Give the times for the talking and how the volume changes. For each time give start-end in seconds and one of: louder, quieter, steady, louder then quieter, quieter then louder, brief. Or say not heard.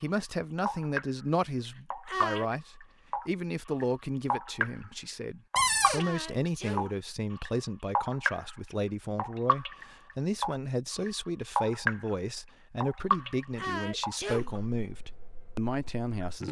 0.0-16.4 steady.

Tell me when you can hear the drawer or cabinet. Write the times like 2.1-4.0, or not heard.
5.5-6.0.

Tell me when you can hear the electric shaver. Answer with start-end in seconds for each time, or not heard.
not heard.